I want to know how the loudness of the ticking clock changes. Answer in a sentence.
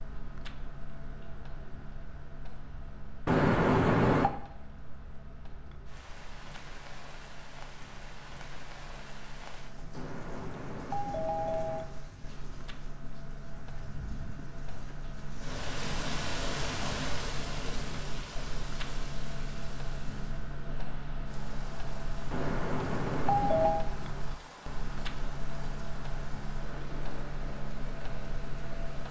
The volume of the ticking clock goes up.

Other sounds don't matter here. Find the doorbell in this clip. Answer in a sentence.
You can hear the doorbell from 3.2 to 4.3 s, from 9.9 to 11.9 s and from 22.3 to 23.9 s.